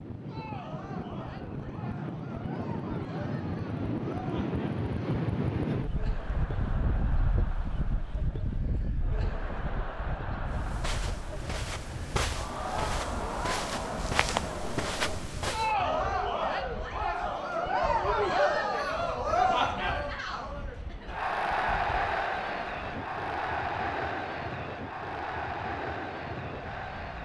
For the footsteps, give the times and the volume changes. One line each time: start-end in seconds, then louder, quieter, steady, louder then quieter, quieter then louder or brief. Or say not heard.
10.5-15.8 louder.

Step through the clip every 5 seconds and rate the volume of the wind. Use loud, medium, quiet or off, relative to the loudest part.
loud, loud, medium, quiet, medium, medium.